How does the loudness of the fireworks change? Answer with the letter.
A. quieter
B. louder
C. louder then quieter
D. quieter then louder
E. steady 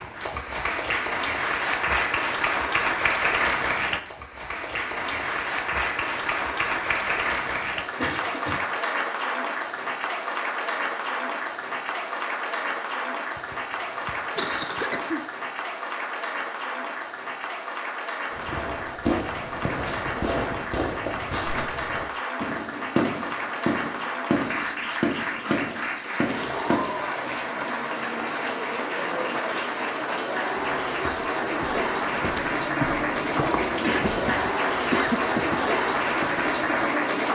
E.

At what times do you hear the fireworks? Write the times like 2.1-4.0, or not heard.
18.3-26.9.